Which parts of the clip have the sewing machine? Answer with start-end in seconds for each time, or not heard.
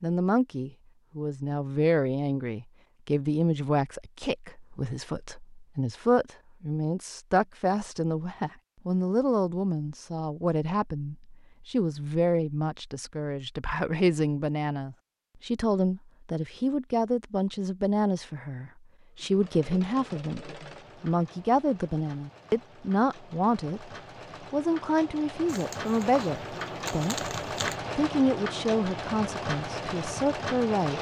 19.1-30.9.